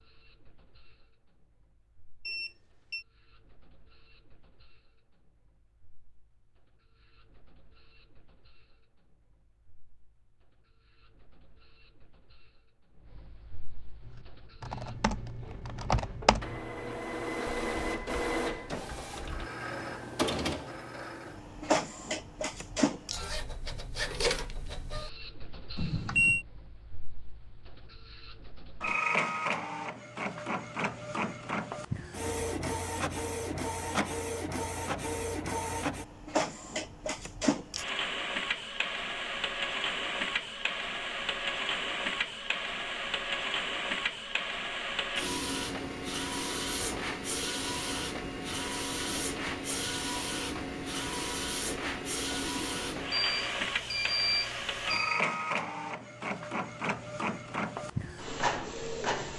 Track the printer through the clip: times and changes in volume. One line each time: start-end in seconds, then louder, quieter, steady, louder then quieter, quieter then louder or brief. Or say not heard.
0.0-59.3 louder.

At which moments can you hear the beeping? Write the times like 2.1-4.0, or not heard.
2.2-3.0, 25.8-26.4, 53.1-55.2.